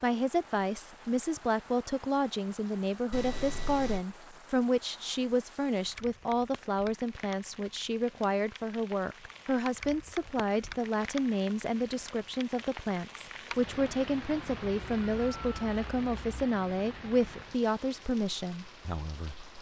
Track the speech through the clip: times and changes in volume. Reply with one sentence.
You can hear the speech from 0.0 to 19.5 s, at a steady volume.